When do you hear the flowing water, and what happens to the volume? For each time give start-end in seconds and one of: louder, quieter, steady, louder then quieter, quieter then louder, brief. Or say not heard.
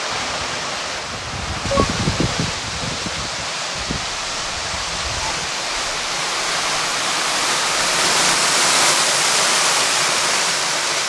0.0-11.0 louder.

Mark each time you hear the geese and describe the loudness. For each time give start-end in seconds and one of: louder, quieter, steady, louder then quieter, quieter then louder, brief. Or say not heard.
0.1-5.2 louder then quieter.